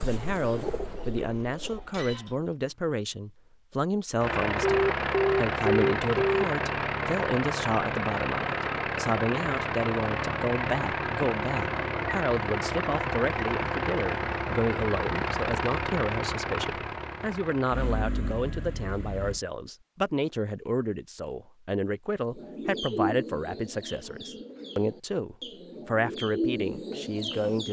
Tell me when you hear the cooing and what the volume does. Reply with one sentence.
You can hear the cooing briefly from 0.0 to 2.5 s; and from 22.4 to 27.6 s, getting quieter then louder.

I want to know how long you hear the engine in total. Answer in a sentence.
The engine can be heard for 15 seconds in total.